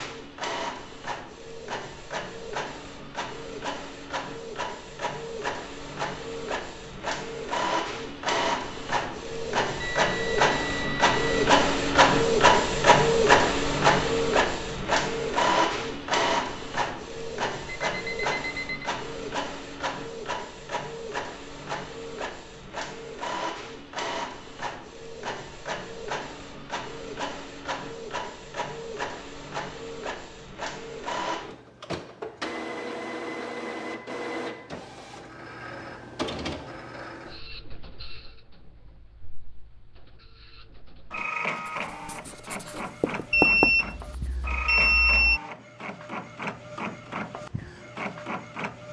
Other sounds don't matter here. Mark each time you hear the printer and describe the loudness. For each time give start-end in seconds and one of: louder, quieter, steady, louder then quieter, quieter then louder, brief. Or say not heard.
0.0-48.8 louder then quieter.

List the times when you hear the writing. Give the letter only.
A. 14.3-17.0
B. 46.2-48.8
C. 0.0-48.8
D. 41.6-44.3
D.